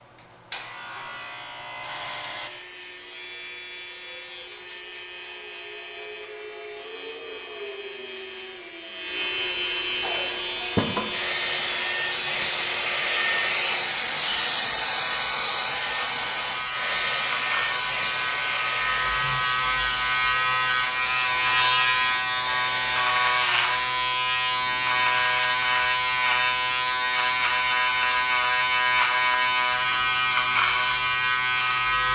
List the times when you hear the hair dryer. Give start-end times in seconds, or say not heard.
10.0-23.6.